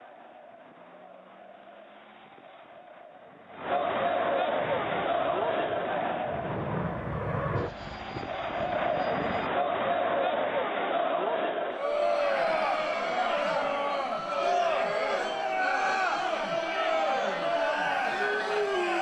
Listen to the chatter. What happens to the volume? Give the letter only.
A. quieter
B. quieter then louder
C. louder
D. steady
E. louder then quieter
C.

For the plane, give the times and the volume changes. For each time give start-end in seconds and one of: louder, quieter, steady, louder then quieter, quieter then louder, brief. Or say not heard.
4.5-9.5 louder then quieter.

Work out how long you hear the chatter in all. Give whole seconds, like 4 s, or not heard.
19 s.